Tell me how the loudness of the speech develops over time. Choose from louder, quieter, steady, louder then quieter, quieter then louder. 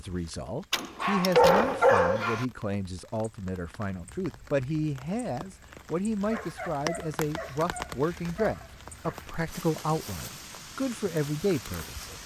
steady.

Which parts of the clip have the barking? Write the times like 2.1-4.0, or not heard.
0.7-2.5, 6.3-9.2.